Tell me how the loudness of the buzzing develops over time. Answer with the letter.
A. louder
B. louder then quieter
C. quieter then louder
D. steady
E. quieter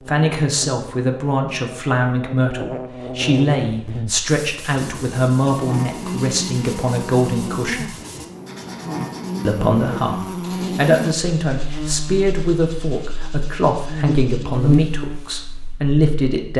A.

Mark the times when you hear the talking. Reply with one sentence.
You can hear the talking from 0.1 to 8.0 s and from 9.4 to 16.5 s.